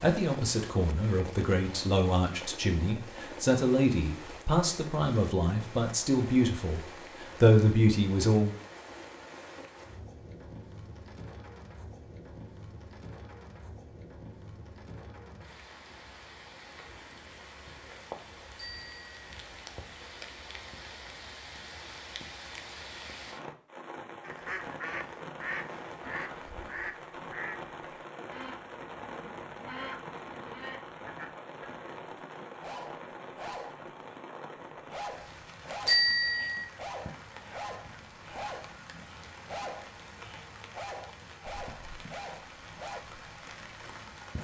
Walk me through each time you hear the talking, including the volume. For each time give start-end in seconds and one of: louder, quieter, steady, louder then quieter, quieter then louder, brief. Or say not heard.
0.0-8.6 louder.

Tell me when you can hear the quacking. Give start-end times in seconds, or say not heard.
24.2-31.9.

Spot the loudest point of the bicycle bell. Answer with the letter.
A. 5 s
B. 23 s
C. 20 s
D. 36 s
D.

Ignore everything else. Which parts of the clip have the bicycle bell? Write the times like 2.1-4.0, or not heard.
18.6-19.1, 35.9-36.6.